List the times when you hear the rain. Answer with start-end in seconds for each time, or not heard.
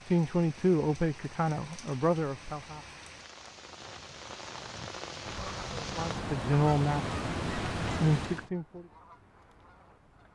0.0-8.5.